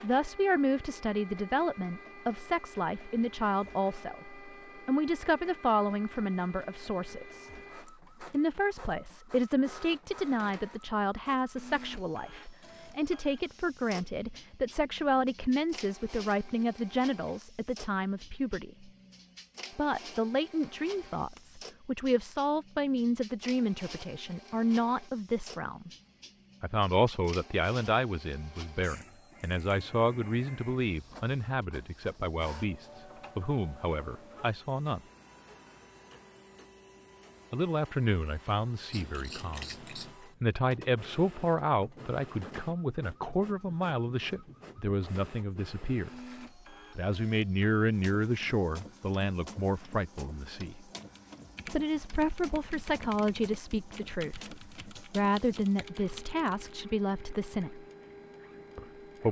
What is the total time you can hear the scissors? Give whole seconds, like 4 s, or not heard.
2 s.